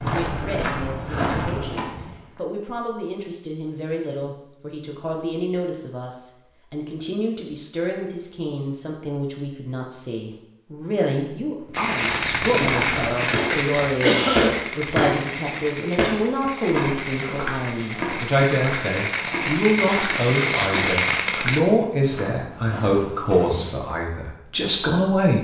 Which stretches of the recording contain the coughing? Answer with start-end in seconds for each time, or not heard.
13.7-14.6.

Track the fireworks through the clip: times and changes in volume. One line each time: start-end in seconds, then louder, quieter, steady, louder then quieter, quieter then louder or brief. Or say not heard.
11.7-21.6 quieter then louder.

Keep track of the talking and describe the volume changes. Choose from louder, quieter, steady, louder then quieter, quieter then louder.
louder.